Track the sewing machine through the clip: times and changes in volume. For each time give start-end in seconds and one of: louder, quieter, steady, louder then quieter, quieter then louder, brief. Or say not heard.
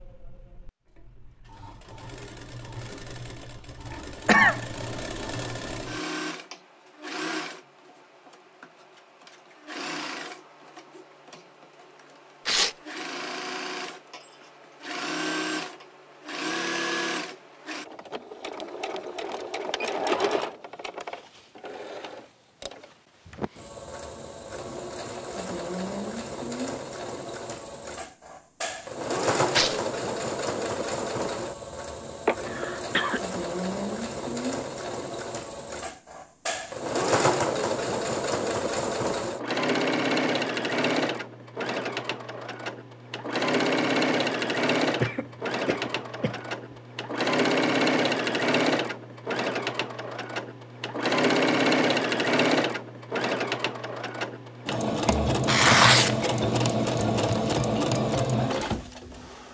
0.0-59.4 louder.